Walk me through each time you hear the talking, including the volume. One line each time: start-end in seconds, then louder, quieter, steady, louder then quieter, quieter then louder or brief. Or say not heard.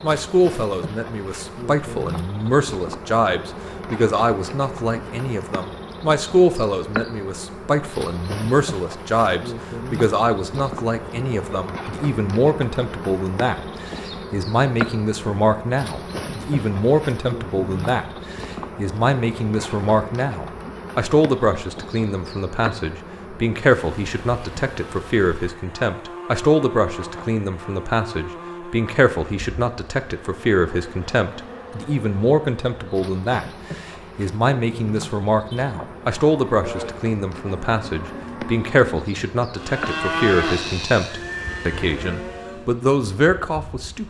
0.0-44.0 steady.